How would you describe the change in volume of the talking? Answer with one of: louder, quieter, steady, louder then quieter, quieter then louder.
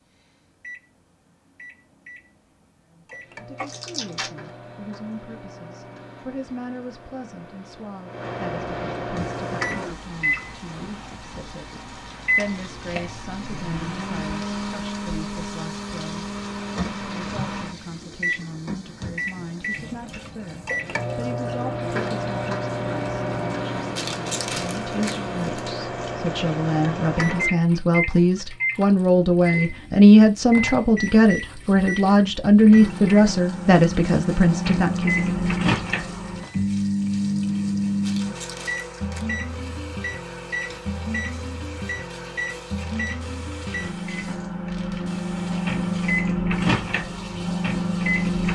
louder.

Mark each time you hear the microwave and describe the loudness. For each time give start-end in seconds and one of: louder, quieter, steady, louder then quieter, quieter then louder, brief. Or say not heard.
0.1-48.4 louder.